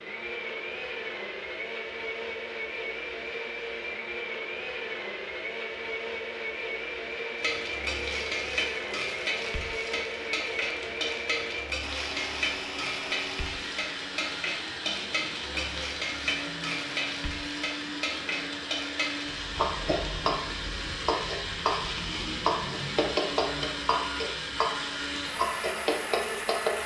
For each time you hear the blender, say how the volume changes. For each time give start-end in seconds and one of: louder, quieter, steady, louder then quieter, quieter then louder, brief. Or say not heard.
0.0-26.8 steady.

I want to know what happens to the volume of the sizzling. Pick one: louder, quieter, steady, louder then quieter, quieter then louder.
steady.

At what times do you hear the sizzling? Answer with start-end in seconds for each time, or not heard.
7.3-26.8.